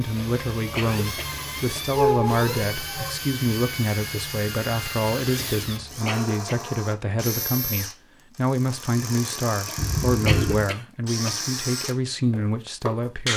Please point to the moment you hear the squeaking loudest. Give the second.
2 s.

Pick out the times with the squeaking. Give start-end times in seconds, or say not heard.
1.9-3.1, 9.8-10.7.